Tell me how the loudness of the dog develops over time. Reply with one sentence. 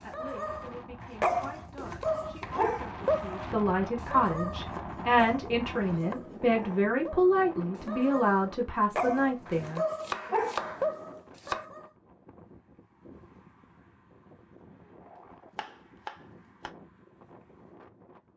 The loudness of the dog goes down, then up.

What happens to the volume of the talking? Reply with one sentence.
The loudness of the talking goes up.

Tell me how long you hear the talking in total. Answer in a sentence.
The talking can be heard for 10 seconds in total.